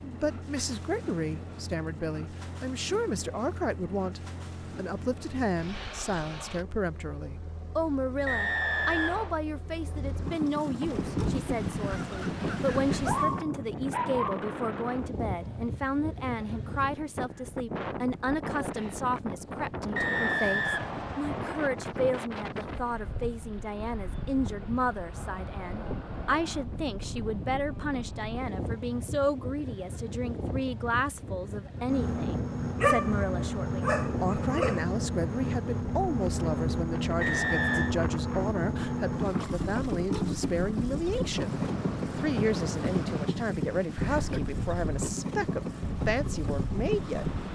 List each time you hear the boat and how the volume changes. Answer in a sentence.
You can hear the boat from 0.0 to 13.4 s, getting louder; and from 31.9 to 47.5 s, at a steady volume.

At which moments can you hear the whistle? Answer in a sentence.
You can hear the whistle from 8.2 to 9.3 s, from 19.9 to 21.7 s and from 37.2 to 38.0 s.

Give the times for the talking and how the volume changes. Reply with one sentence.
You can hear the talking from 0.0 to 47.2 s, at a steady volume.